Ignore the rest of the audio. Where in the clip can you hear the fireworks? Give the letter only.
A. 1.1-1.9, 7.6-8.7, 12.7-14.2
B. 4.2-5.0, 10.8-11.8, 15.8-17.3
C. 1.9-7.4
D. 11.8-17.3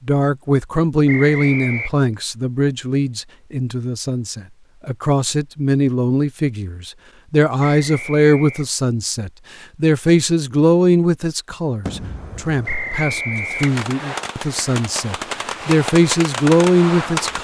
D.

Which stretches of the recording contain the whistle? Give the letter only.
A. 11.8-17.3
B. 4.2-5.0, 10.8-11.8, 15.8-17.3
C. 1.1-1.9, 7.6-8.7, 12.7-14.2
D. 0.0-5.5
C.